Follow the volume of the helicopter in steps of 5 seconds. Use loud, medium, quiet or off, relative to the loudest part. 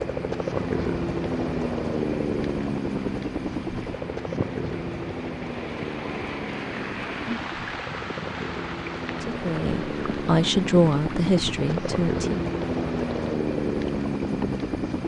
loud, medium, loud.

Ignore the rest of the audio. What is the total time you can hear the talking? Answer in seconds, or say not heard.
3 s.